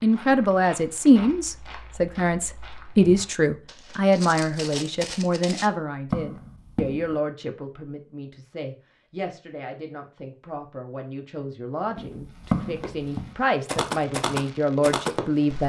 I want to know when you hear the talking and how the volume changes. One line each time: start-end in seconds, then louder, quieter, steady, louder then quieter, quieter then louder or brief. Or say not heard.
0.0-15.6 quieter then louder.